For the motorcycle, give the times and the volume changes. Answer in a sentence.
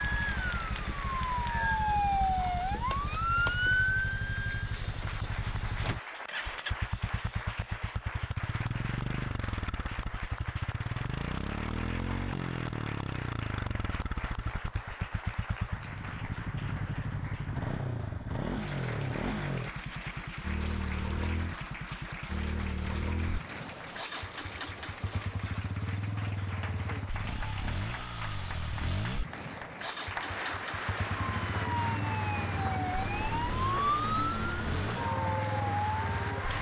The motorcycle can be heard from 0.0 to 36.5 s, at a steady volume.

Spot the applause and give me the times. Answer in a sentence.
The applause can be heard from 0.0 to 36.5 s.